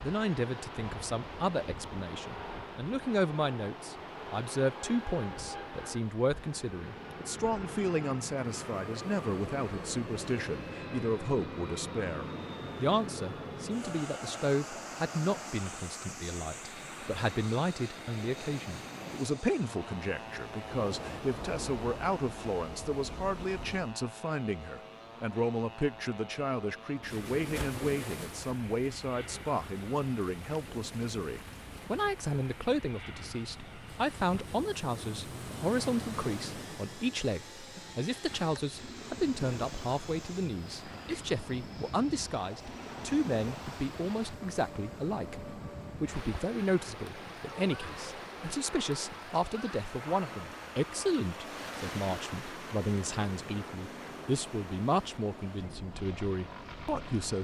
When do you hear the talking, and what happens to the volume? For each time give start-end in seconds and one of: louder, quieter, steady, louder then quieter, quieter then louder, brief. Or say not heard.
0.0-57.3 steady.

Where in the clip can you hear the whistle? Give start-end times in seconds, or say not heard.
not heard.